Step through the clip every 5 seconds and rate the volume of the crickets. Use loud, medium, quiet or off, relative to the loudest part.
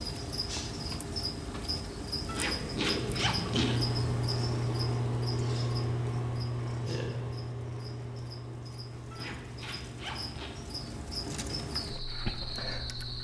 loud, medium, loud.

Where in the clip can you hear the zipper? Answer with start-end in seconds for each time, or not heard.
2.2-3.9, 9.1-10.6.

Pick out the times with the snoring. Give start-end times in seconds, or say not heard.
not heard.